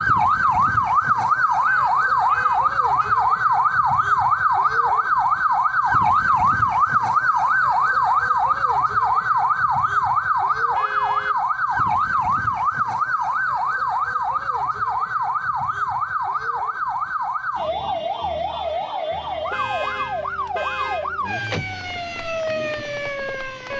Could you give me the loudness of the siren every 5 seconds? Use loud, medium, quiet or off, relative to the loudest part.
loud, loud, loud, medium, medium.